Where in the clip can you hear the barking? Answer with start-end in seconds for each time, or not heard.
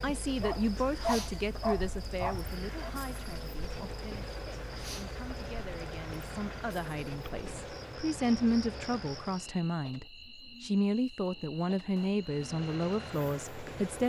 0.4-2.9.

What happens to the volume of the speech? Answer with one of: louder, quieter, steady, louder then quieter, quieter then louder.
quieter then louder.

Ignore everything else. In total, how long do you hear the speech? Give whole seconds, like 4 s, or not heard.
14 s.